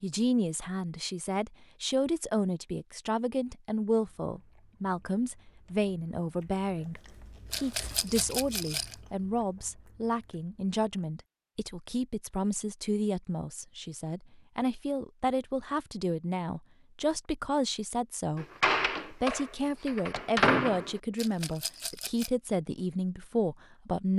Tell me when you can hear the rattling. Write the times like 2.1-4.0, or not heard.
7.5-8.9, 21.1-22.3.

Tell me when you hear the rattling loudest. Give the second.
8 s.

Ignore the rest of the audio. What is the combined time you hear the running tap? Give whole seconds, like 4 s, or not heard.
not heard.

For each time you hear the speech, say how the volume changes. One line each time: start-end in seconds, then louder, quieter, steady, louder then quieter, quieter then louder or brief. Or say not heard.
0.0-18.4 steady
19.1-24.1 steady.